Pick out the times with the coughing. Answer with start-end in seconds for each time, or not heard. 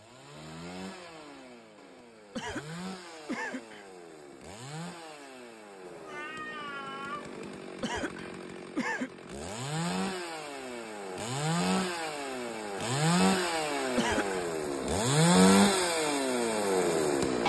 2.4-3.9, 7.8-9.1, 13.9-14.5.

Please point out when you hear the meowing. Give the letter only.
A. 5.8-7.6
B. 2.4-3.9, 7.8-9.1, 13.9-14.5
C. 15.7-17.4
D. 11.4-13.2
A.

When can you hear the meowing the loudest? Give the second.
7 s.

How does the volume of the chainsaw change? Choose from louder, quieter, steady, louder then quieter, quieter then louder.
louder.